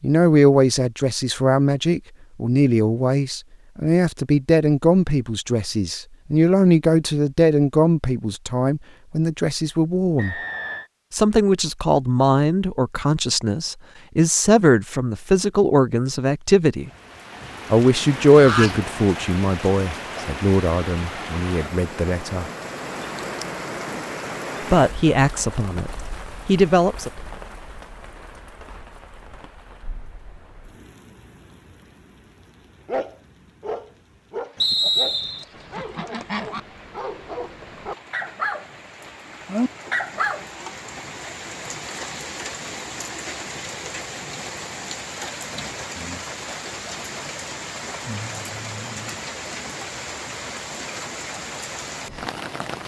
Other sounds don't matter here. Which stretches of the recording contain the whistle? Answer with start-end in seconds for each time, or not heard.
10.2-10.9, 34.5-35.5.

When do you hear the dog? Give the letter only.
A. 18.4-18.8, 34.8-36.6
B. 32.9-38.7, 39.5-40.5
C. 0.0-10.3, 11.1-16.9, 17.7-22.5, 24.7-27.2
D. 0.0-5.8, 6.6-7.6
B.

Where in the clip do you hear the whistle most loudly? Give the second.
35 s.